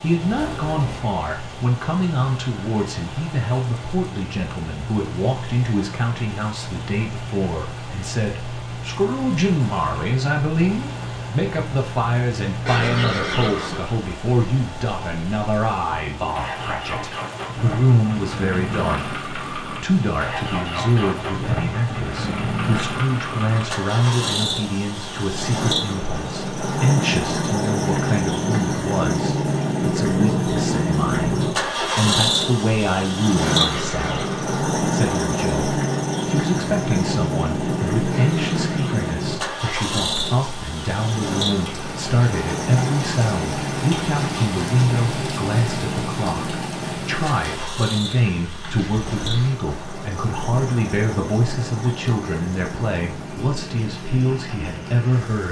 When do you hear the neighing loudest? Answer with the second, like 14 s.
13 s.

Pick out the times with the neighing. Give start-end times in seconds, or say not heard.
12.7-13.8, 33.4-34.5, 38.1-39.1.